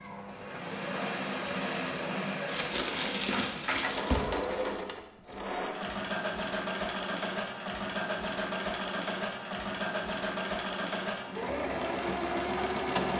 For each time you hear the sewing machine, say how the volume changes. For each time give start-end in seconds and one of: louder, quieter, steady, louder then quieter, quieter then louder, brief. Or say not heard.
0.0-13.1 steady.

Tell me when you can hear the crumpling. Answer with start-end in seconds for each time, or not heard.
2.5-4.2.